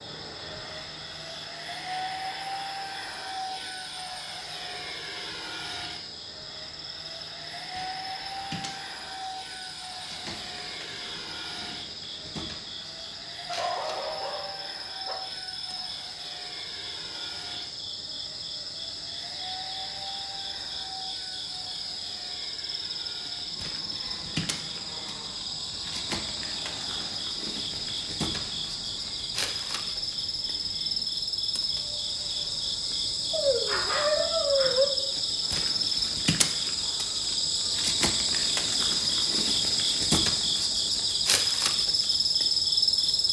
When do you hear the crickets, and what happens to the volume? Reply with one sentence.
You can hear the crickets from 0.0 to 43.2 s, getting louder.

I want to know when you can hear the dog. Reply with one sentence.
You can hear the dog from 13.4 to 15.2 s and from 33.3 to 34.9 s.